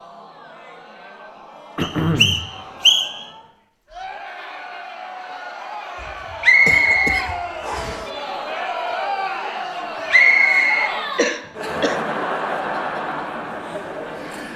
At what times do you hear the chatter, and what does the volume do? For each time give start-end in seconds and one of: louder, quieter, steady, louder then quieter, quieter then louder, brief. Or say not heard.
0.0-14.5 louder.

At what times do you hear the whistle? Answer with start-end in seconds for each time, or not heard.
1.8-3.2, 6.4-8.0, 10.1-10.9.